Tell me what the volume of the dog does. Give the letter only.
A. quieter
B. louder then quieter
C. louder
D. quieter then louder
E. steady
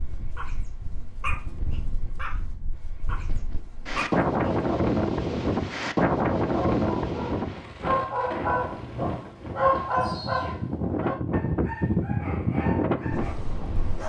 B.